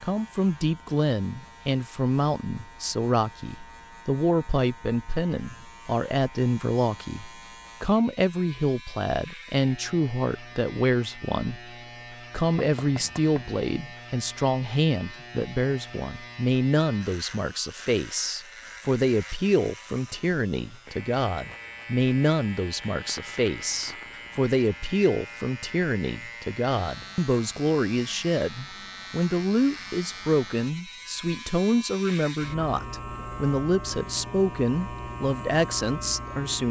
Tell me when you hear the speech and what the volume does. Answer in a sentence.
You can hear the speech from 0.0 to 36.6 s, at a steady volume.